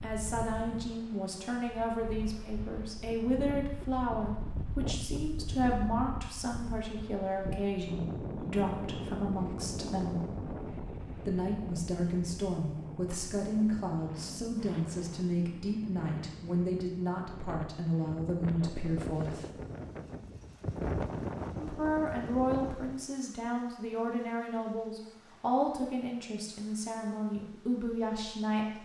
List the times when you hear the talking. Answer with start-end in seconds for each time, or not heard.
0.0-10.2, 11.2-19.5, 21.6-28.7.